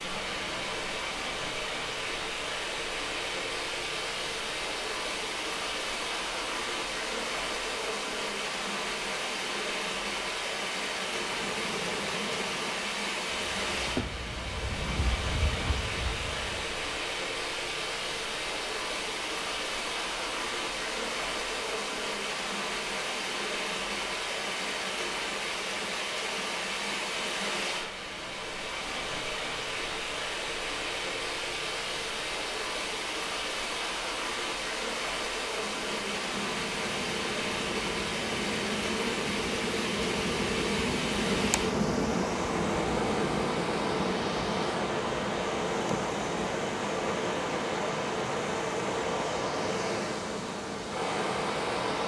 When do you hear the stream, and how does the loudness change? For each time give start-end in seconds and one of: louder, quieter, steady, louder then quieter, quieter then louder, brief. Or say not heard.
0.0-52.0 steady.